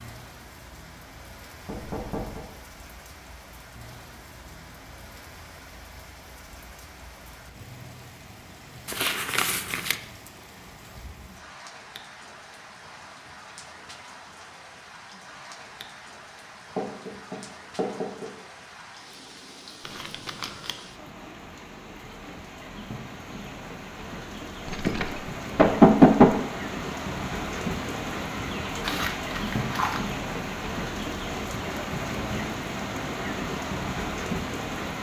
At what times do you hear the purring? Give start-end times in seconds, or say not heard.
not heard.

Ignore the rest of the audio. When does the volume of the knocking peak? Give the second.
26 s.